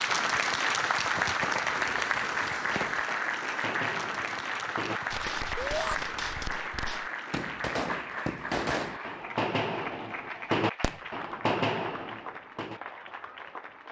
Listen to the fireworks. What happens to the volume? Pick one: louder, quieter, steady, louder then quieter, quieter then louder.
louder.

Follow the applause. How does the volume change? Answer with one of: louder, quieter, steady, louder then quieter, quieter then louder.
quieter.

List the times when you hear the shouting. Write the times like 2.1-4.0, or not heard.
5.5-6.0.